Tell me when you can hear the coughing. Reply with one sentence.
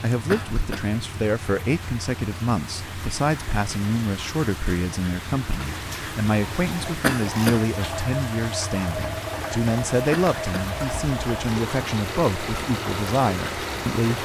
You can hear the coughing from 0.3 to 0.9 s, from 7.0 to 7.7 s and from 10.1 to 10.7 s.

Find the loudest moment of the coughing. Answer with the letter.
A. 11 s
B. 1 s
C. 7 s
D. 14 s
C.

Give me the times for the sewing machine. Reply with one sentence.
The sewing machine can be heard from 6.6 to 14.1 s.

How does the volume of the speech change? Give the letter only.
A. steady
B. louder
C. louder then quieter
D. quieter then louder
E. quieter
A.